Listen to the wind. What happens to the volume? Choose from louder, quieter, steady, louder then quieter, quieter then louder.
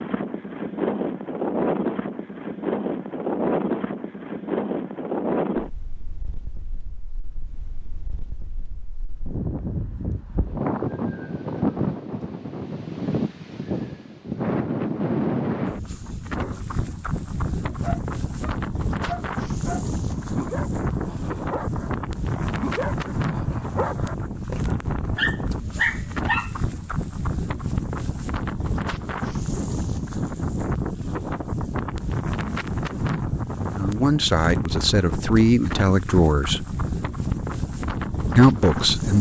steady.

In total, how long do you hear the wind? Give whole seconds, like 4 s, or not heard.
39 s.